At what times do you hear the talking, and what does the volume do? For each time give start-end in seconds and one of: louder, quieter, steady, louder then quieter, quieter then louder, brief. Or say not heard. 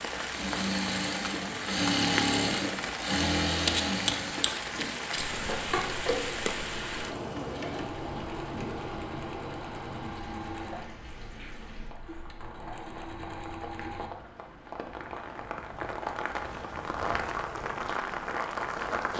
not heard.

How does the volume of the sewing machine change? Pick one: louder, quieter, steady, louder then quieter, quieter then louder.
quieter.